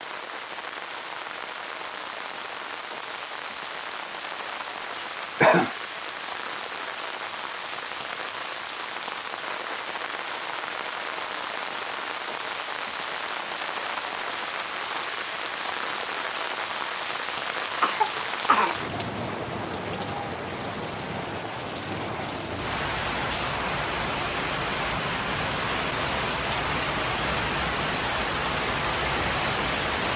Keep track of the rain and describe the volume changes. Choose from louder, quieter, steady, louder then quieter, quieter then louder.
louder.